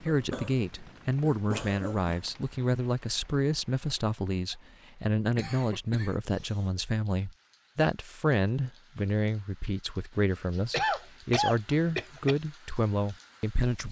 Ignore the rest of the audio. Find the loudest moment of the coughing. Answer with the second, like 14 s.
11 s.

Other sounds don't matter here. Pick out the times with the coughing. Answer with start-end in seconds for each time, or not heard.
0.1-2.1, 5.3-6.8, 10.7-12.3.